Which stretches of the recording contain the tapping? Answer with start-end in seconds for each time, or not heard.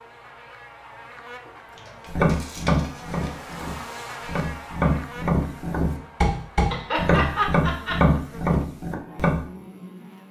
2.0-9.4.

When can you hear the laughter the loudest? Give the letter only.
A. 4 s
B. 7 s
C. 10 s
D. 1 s
B.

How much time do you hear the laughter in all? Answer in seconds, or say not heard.
2 s.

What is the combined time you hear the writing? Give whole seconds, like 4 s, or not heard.
not heard.